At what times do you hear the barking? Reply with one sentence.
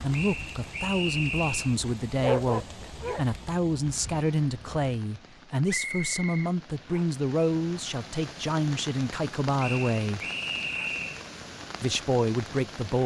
The barking can be heard from 2.2 to 4.9 s.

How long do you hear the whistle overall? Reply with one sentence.
You can hear the whistle for 5 seconds altogether.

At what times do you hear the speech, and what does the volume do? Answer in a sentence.
The speech can be heard from 0.0 to 10.2 s, at a steady volume; and briefly from 11.8 to 13.0 s.